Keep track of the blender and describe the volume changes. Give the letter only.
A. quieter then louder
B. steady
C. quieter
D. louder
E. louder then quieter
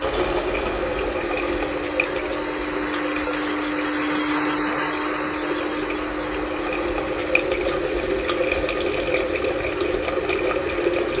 E.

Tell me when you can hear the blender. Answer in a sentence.
The blender can be heard from 0.0 to 11.1 s.